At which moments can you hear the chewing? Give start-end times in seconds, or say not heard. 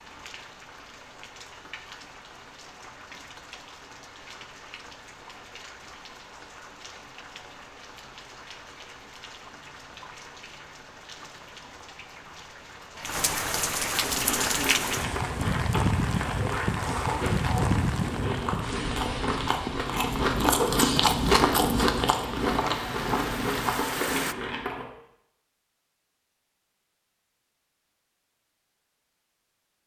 14.0-24.9.